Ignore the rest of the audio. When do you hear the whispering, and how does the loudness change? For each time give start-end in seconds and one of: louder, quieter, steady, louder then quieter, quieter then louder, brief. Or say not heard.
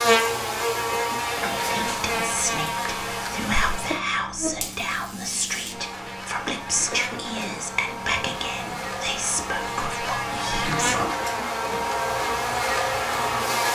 1.6-11.1 steady.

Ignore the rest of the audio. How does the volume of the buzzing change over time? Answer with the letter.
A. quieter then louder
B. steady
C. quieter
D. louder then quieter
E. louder
A.